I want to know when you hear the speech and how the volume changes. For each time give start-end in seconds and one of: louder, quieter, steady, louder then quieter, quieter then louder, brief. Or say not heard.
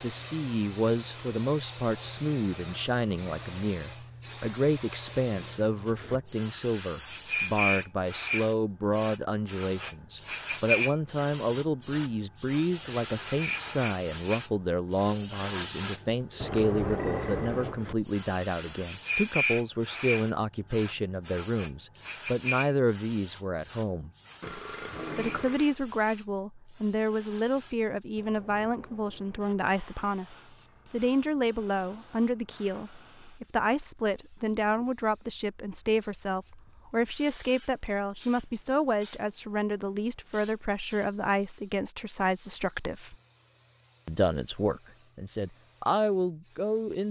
0.0-24.1 steady
25.1-43.1 steady
44.0-47.0 brief.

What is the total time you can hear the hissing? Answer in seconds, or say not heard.
47 s.